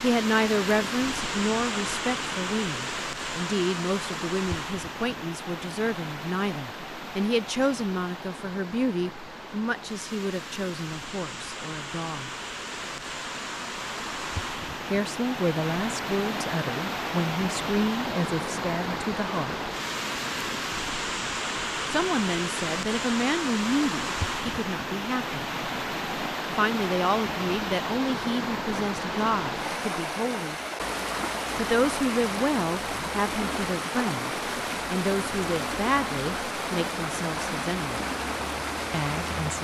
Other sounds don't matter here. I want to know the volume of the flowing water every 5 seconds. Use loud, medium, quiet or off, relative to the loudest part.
loud, medium, medium, loud, loud, loud, loud, loud.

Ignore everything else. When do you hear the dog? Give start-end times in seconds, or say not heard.
not heard.